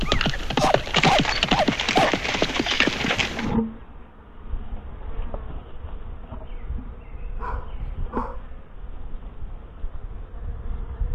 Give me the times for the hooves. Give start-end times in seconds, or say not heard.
0.0-3.5.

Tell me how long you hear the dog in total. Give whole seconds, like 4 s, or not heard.
3 s.